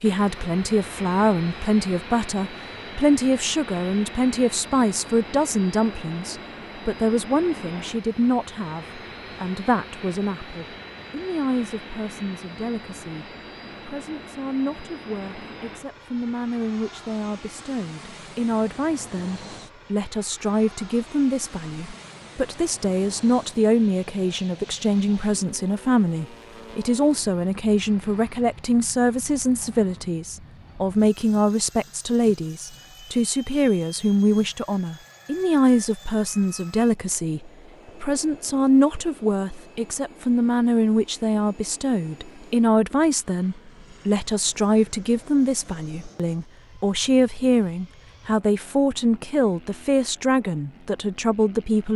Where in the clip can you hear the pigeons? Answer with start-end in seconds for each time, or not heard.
not heard.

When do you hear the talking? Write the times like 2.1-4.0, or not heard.
0.0-51.9.